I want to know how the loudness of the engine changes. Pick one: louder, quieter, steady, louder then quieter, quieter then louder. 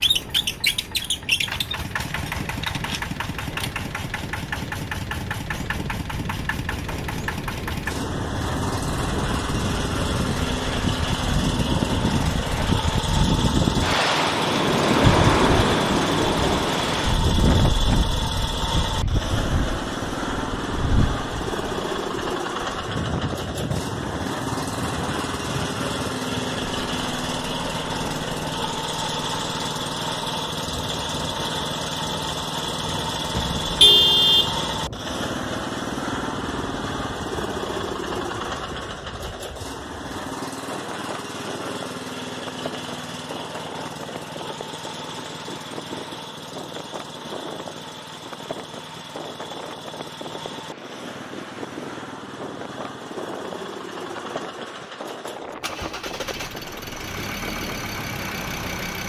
quieter.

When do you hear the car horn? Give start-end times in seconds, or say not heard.
33.3-34.5.